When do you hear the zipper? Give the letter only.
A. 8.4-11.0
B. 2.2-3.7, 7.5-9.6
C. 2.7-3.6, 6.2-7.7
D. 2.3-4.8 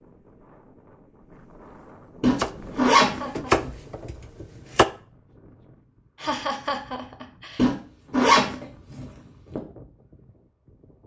B.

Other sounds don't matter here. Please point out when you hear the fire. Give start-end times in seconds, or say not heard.
not heard.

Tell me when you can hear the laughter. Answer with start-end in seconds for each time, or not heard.
2.7-3.6, 6.2-7.7.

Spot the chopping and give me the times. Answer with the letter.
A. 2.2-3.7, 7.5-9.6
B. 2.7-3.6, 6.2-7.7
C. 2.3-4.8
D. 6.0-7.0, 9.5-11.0
C.